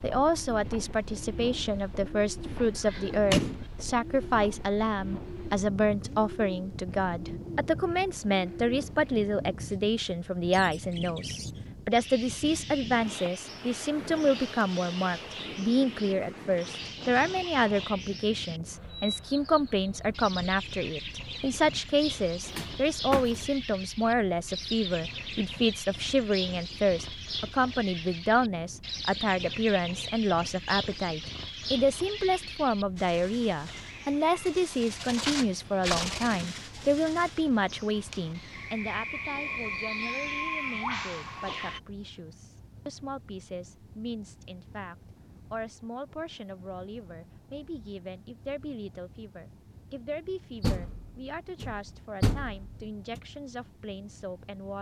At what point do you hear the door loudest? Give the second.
3 s.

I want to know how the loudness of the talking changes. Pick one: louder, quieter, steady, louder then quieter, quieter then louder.
quieter.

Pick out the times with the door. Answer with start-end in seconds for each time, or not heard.
2.5-3.6, 22.4-23.4, 50.6-53.2.